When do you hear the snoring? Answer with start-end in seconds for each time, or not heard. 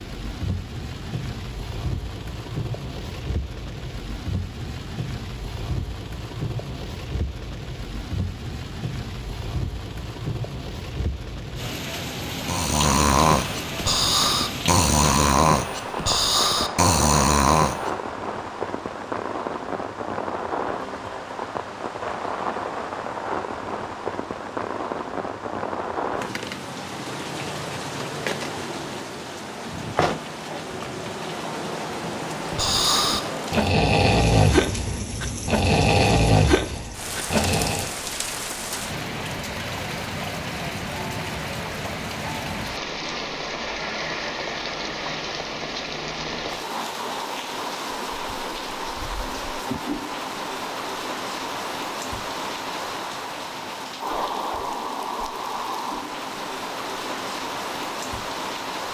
12.4-17.9, 32.5-37.9.